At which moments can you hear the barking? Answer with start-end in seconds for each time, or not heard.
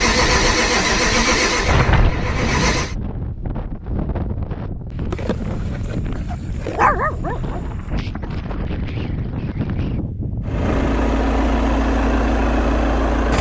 5.1-7.6.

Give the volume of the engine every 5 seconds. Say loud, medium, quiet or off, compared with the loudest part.
loud, off, loud.